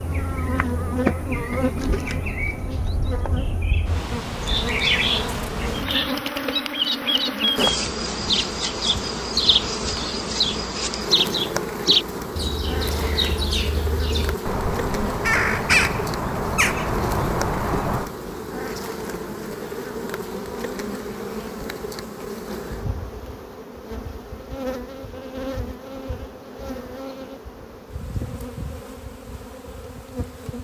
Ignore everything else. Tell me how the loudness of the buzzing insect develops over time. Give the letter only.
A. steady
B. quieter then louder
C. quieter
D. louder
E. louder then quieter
C.